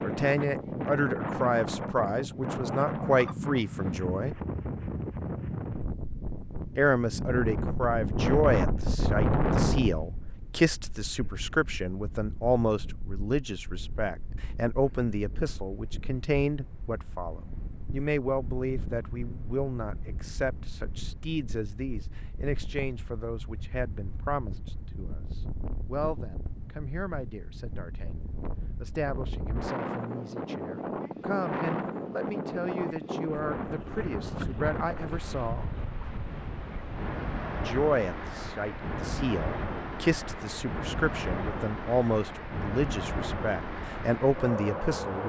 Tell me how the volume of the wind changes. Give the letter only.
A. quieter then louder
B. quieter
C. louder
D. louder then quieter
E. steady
A.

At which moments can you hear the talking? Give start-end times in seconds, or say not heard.
0.0-4.4, 6.8-35.8, 37.6-45.2.